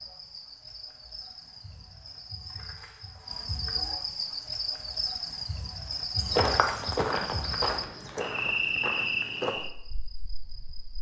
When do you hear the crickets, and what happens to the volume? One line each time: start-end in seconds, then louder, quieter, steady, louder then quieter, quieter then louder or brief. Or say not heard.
0.0-10.9 louder.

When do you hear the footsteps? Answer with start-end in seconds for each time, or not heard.
6.2-9.6.